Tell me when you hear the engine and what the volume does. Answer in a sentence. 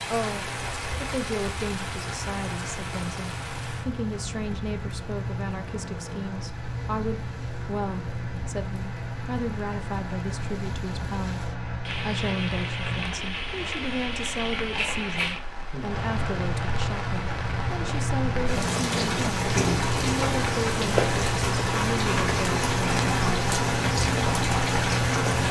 You can hear the engine from 0.0 to 25.4 s, getting louder.